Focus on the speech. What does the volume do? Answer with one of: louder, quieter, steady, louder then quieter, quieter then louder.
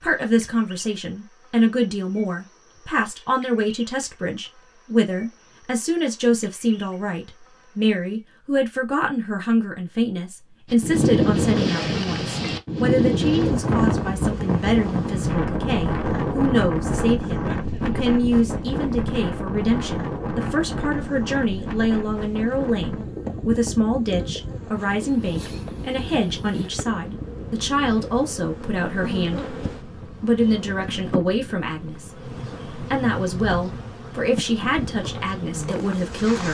steady.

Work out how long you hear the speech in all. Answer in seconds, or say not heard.
36 s.